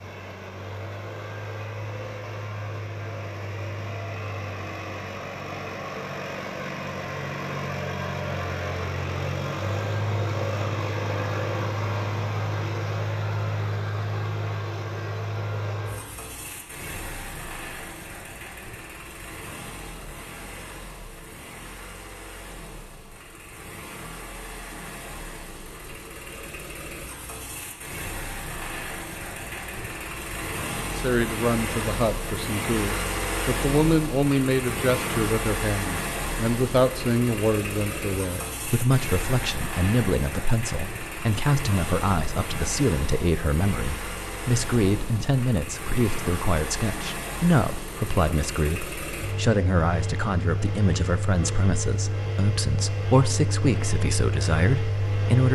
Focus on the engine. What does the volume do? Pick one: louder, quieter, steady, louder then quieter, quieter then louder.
steady.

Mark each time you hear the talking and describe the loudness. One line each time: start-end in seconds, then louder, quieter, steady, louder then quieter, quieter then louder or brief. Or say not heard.
30.9-55.4 steady.